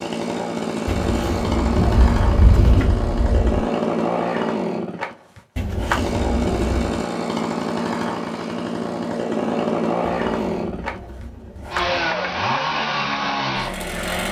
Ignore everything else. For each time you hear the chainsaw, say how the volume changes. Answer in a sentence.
The chainsaw can be heard from 0.0 to 14.2 s, at a steady volume.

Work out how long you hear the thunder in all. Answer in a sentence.
The thunder can be heard for 2 seconds in total.